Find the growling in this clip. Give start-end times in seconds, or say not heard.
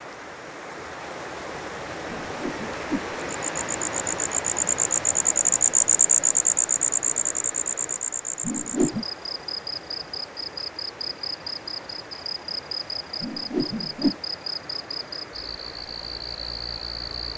not heard.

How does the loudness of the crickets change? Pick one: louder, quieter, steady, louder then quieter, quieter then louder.
quieter.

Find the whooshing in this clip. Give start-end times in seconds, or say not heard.
2.2-3.1, 8.4-9.1, 13.2-14.2.